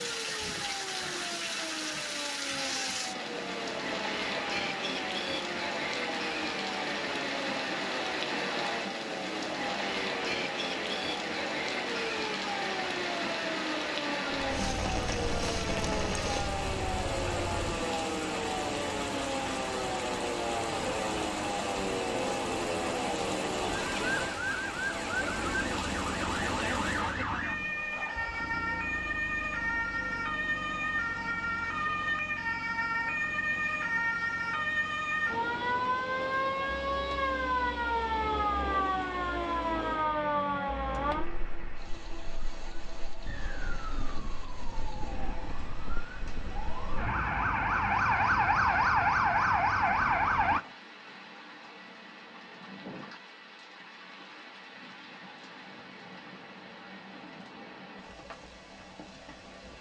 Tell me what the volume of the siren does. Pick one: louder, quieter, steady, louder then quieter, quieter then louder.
louder.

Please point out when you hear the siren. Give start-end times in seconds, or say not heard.
0.0-50.6.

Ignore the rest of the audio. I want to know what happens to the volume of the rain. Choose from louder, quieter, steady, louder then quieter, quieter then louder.
quieter.